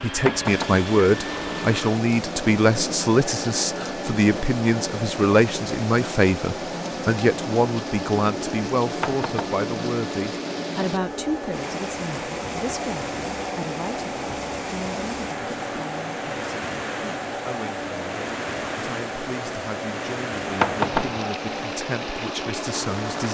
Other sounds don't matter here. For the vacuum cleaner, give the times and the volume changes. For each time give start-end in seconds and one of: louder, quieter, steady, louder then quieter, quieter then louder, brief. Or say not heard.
0.0-23.2 steady.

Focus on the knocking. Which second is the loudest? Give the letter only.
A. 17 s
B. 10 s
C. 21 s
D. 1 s
C.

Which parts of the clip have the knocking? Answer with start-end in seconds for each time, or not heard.
0.2-0.8, 9.0-9.6, 20.6-21.2.